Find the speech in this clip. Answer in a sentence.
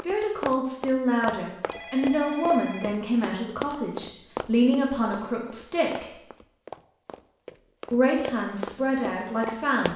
You can hear the speech from 0.1 to 6.1 s and from 7.9 to 9.9 s.